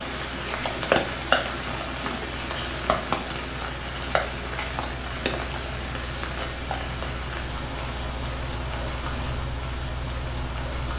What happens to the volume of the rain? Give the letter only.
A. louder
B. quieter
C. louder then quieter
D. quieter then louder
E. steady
B.